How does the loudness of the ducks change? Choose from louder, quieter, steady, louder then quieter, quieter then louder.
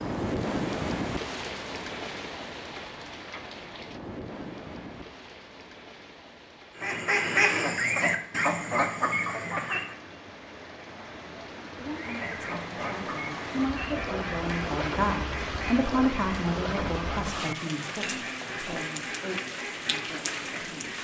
quieter.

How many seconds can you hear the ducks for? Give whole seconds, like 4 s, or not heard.
12 s.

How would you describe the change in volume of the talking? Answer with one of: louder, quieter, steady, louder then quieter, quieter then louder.
louder then quieter.